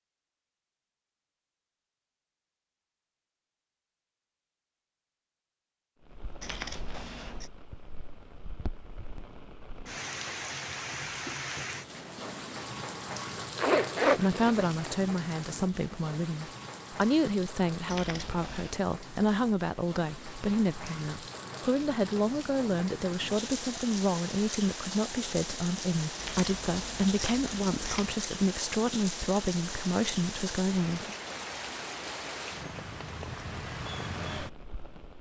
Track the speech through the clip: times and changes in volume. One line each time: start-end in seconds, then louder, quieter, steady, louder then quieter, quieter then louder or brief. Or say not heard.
14.2-31.1 steady.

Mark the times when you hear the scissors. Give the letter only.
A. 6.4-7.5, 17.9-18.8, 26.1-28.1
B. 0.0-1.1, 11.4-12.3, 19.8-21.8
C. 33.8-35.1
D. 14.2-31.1
A.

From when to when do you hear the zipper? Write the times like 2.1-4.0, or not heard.
13.6-14.9.